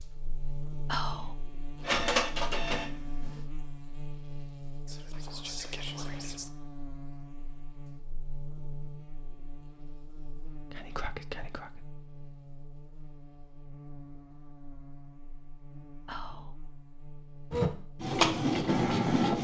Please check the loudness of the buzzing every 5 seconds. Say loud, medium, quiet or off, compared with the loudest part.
loud, loud, medium, medium.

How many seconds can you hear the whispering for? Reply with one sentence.
The whispering can be heard for 4 seconds in total.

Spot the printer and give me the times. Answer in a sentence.
The printer can be heard from 1.8 to 3.4 s and from 17.5 to 19.4 s.